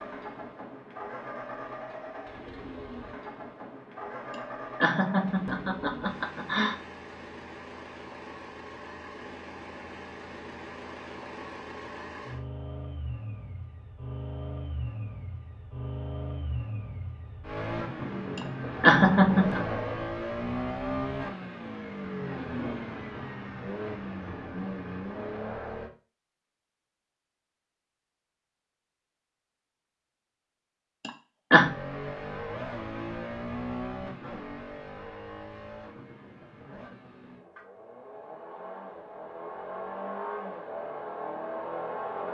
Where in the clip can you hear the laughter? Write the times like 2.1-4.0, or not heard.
4.3-6.8, 18.4-19.6, 31.1-31.7.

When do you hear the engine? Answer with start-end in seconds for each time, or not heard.
0.0-25.9, 31.5-42.2.